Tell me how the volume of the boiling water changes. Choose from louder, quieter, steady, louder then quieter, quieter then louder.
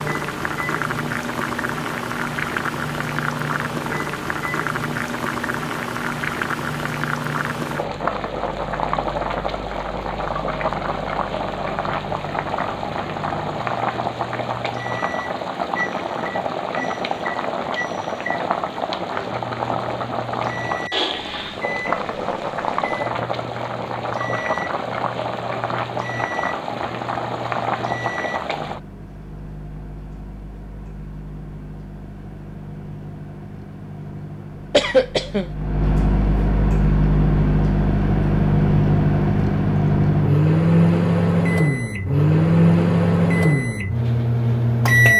steady.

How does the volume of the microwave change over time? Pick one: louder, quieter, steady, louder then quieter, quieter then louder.
louder.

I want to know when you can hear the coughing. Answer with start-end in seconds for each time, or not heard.
34.7-35.5.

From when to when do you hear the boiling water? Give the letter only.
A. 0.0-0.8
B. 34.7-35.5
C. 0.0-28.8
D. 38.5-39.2
C.